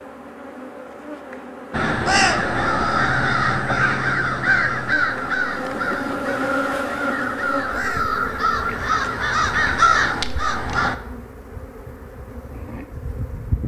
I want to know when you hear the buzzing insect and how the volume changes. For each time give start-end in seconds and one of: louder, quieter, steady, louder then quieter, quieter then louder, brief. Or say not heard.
0.0-13.6 louder then quieter.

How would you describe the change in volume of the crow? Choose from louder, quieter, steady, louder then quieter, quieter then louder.
quieter then louder.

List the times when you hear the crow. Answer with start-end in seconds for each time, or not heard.
1.7-10.9.